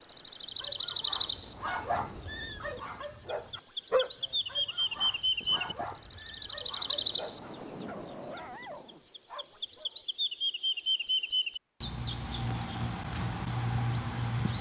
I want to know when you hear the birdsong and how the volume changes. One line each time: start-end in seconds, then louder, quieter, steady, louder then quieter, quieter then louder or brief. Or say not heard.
0.0-14.5 steady.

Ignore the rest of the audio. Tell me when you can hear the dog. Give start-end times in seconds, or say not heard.
0.6-10.1.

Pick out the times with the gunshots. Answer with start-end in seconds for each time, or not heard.
not heard.